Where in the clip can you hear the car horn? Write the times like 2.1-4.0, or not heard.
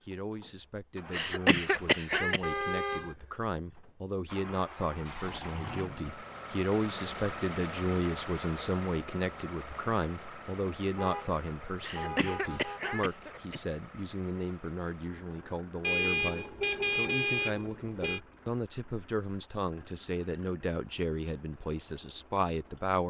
2.4-3.1, 10.9-13.1, 15.8-18.2.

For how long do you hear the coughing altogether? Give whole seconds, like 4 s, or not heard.
3 s.